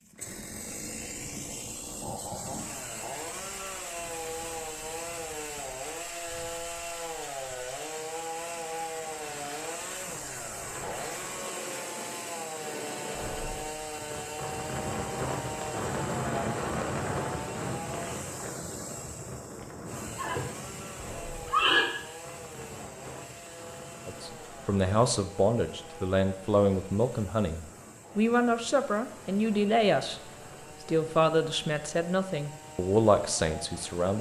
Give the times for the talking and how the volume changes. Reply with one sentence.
The talking can be heard from 24.1 to 34.1 s, at a steady volume.